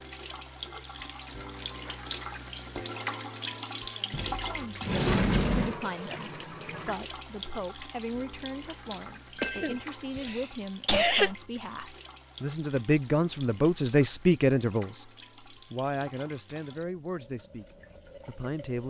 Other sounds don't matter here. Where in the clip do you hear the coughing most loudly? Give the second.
11 s.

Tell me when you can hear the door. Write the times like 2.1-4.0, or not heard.
4.1-5.8.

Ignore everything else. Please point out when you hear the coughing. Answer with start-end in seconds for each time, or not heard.
9.3-11.3.